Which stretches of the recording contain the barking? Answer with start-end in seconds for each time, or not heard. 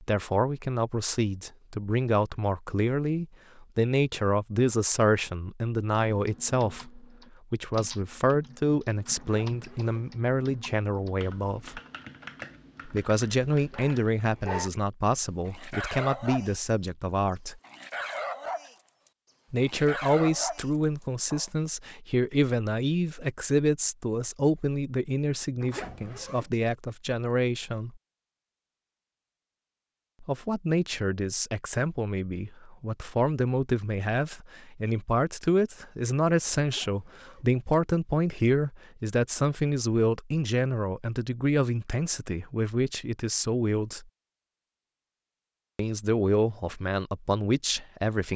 13.7-14.7, 15.4-16.9, 17.6-18.8, 19.6-21.5.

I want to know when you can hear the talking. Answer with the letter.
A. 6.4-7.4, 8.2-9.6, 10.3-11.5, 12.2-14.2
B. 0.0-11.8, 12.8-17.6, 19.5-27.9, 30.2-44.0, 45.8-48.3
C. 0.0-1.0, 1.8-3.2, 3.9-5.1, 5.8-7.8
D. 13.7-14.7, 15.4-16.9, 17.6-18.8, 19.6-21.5
B.